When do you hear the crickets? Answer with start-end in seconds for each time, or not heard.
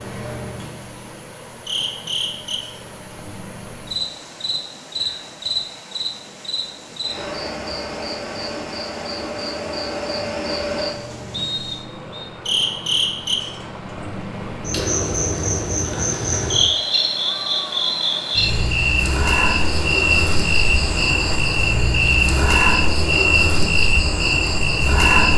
0.0-25.3.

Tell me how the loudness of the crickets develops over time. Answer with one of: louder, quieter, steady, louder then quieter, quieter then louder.
louder.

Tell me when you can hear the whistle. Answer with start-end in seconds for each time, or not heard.
11.3-12.3.